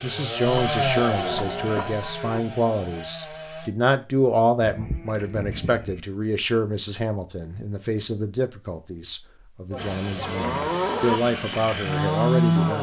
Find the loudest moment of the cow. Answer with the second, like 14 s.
11 s.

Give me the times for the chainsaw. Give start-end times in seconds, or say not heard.
0.0-3.7, 9.8-12.7.